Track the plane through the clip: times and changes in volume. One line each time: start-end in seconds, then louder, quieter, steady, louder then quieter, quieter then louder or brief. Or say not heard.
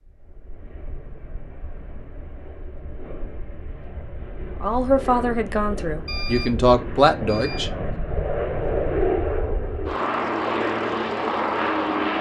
0.0-12.1 louder.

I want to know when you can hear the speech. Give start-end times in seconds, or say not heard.
4.6-7.7.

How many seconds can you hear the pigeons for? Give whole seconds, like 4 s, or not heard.
not heard.